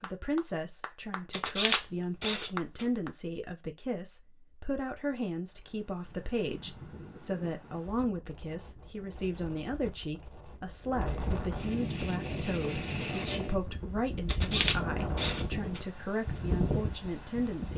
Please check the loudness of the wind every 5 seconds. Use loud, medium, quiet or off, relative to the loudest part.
off, quiet, loud, loud.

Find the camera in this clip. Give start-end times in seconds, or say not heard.
1.3-2.9, 14.2-15.8.